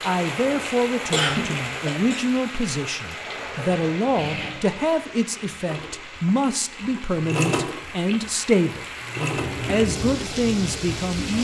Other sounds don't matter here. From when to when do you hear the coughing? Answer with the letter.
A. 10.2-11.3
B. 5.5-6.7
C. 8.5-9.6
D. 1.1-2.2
D.